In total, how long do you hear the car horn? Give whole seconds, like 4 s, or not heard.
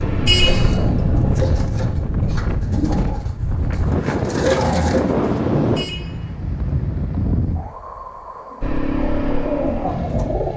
3 s.